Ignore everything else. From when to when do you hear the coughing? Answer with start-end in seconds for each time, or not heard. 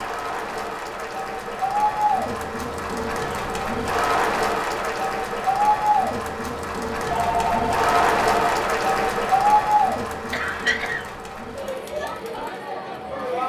10.3-11.1.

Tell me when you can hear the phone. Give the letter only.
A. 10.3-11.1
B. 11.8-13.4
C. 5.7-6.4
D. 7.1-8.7
D.